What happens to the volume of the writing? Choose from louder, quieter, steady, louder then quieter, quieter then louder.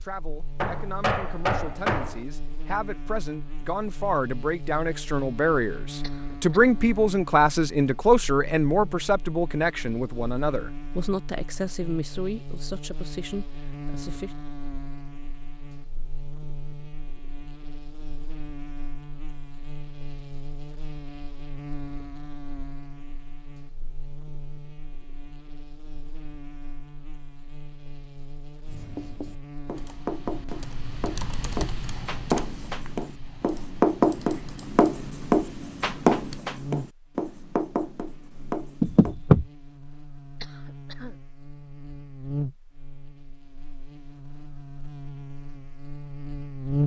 louder then quieter.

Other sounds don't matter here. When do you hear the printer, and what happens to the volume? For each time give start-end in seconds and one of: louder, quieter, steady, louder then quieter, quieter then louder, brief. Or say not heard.
not heard.